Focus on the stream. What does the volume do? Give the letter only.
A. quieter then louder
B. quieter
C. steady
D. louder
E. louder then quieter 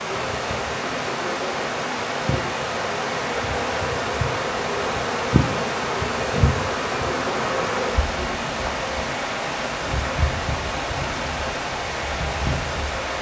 C.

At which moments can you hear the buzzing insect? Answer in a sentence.
You can hear the buzzing insect from 0.0 to 13.1 s.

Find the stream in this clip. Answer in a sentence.
The stream can be heard from 0.0 to 13.1 s.